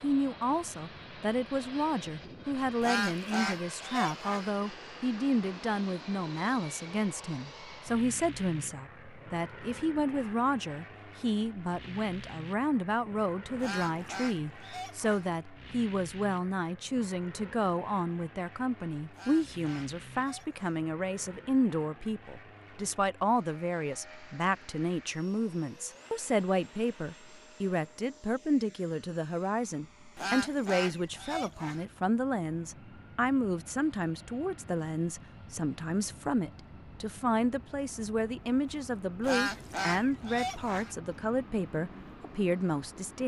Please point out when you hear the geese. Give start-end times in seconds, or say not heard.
2.8-4.5, 13.6-15.3, 19.1-20.9, 30.1-31.9, 39.2-41.0.